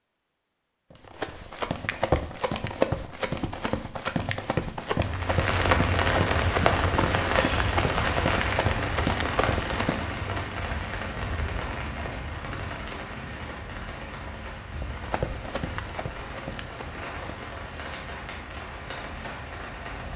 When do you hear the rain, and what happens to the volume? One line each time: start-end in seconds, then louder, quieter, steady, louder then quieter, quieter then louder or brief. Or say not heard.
5.0-20.1 quieter.